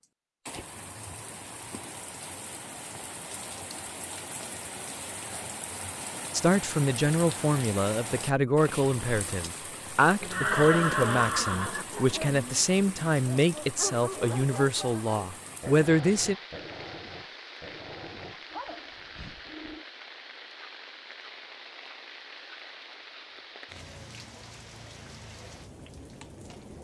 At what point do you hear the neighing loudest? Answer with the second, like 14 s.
11 s.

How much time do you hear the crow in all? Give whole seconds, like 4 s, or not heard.
not heard.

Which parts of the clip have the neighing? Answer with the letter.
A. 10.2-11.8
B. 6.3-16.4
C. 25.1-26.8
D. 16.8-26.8
A.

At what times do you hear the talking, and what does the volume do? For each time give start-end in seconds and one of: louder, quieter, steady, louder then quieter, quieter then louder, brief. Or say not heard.
6.3-16.4 steady.